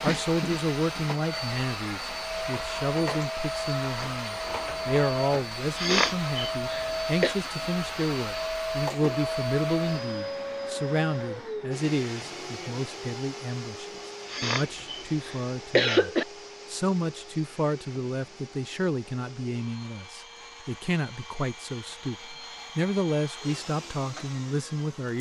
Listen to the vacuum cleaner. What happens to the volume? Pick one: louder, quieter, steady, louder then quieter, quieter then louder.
quieter.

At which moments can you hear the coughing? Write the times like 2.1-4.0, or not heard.
5.8-7.3, 14.3-16.2.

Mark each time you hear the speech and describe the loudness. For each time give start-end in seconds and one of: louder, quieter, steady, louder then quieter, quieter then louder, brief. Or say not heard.
0.0-25.1 steady.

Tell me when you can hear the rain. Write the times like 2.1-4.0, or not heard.
not heard.